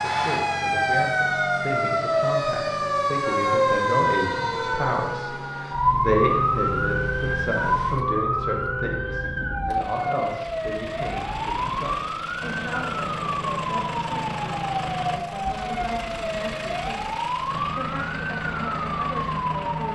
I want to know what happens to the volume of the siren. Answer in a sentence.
The volume of the siren goes down.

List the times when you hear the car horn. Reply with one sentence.
The car horn can't be heard in this clip.